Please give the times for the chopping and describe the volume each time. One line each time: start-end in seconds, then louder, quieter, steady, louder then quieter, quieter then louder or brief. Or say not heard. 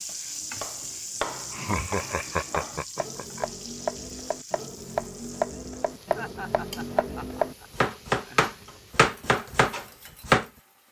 0.2-10.4 louder.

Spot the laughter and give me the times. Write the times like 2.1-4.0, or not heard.
1.5-3.5, 6.2-8.6.